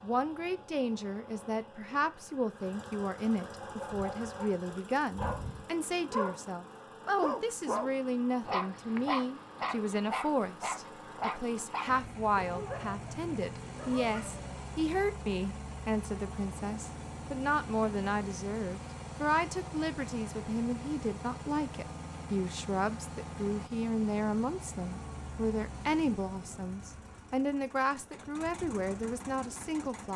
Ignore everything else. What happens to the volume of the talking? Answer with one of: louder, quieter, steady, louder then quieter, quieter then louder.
steady.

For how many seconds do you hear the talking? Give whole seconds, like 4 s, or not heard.
30 s.